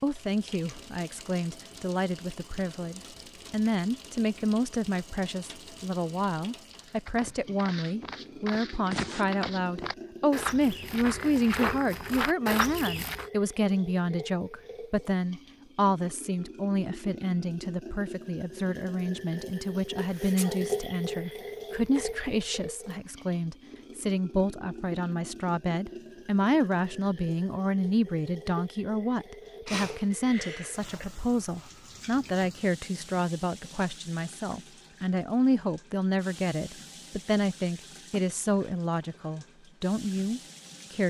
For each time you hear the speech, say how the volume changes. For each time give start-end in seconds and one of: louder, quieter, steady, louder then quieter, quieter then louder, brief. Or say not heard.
0.0-41.0 steady.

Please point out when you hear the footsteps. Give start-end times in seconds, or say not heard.
6.7-13.3.